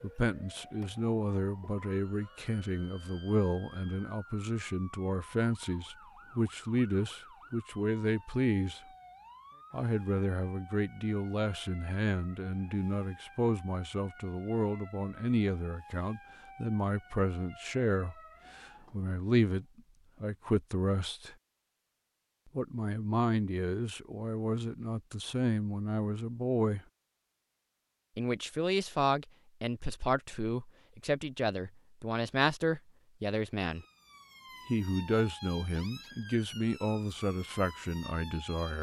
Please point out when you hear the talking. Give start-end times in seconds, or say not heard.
0.0-8.8, 9.7-21.4, 22.6-26.8, 28.1-33.9, 34.6-38.7.